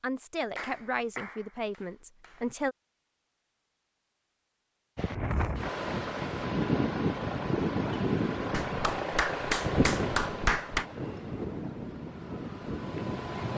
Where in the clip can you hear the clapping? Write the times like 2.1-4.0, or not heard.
0.6-2.5, 8.5-10.8.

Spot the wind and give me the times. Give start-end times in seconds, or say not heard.
5.0-13.5.